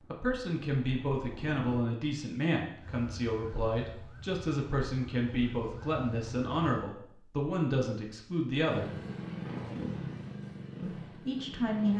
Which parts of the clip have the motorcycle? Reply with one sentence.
You can hear the motorcycle from 0.0 to 1.7 s and from 8.7 to 11.9 s.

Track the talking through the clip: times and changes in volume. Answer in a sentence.
You can hear the talking from 0.1 to 8.9 s, at a steady volume; and briefly from 10.8 to 11.9 s.